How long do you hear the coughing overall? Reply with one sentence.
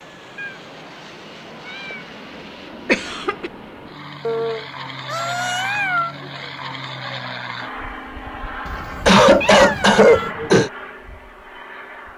The coughing can be heard for 2 seconds in total.